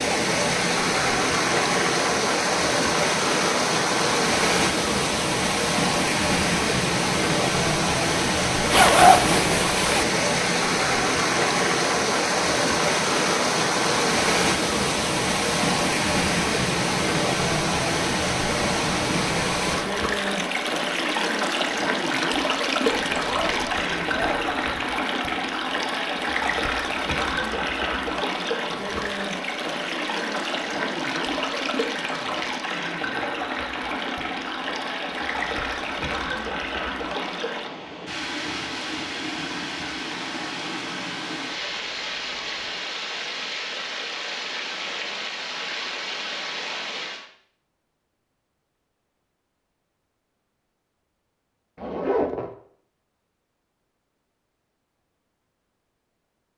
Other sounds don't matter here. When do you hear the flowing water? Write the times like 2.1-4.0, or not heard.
0.0-47.3.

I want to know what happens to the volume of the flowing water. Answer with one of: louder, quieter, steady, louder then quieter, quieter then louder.
quieter.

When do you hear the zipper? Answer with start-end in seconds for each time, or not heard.
8.7-10.1, 22.9-24.9, 51.8-52.5.